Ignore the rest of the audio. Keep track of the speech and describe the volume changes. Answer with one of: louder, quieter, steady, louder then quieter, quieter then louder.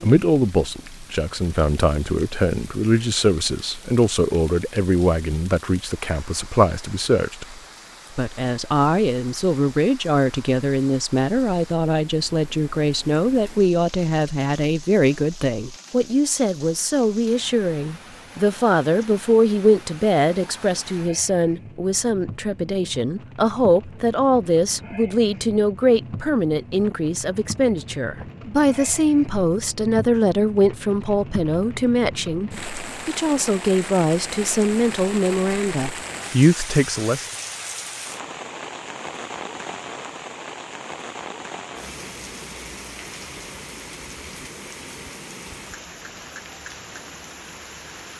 steady.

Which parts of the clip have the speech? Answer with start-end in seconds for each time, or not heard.
0.0-37.2.